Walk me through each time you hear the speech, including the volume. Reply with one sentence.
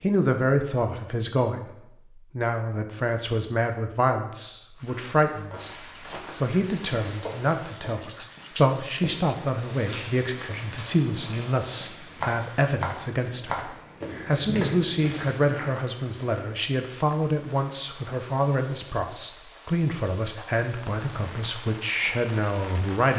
The speech can be heard from 0.0 to 23.1 s, at a steady volume.